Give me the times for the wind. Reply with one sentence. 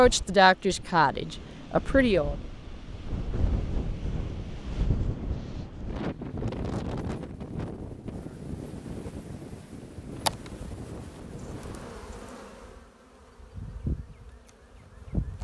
The wind can be heard from 0.0 to 12.0 s.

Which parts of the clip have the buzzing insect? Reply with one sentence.
The buzzing insect can be heard from 10.1 to 15.3 s.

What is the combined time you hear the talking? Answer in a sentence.
You can hear the talking for 2 seconds altogether.